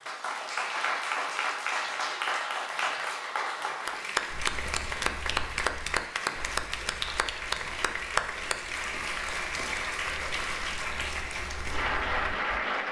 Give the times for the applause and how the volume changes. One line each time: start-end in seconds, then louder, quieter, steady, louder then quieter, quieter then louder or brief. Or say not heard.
0.0-12.8 steady.